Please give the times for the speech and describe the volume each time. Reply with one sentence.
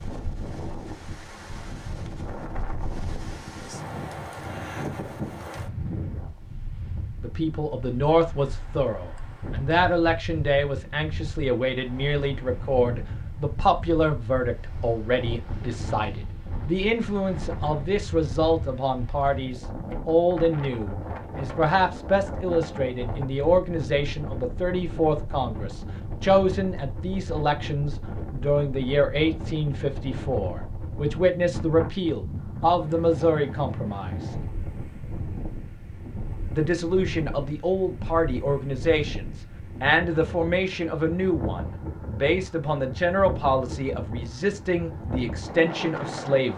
The speech can be heard from 7.2 to 34.3 s, at a steady volume; and from 36.5 to 46.5 s, at a steady volume.